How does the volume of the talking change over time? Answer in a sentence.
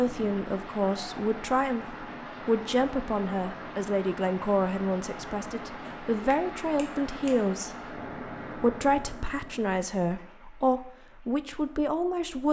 The loudness of the talking stays about the same.